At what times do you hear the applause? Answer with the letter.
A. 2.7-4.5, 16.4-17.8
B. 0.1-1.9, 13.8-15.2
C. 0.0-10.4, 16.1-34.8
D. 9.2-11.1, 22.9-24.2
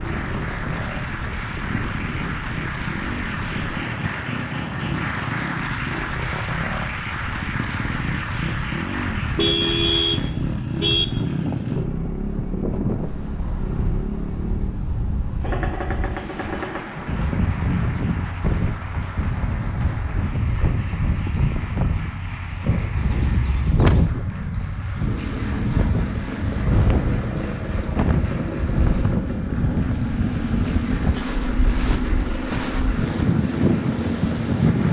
C.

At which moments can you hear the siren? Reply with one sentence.
The siren can't be heard in this clip.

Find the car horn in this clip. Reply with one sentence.
The car horn can be heard from 9.2 to 11.1 s and from 22.9 to 24.2 s.